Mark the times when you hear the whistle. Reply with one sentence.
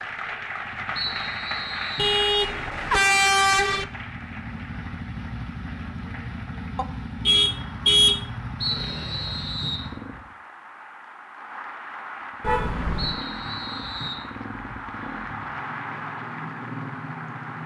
You can hear the whistle from 0.9 to 2.2 s, from 8.6 to 9.9 s and from 12.9 to 14.2 s.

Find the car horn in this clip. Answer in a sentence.
You can hear the car horn from 1.9 to 3.9 s, from 6.8 to 8.2 s and from 12.4 to 13.2 s.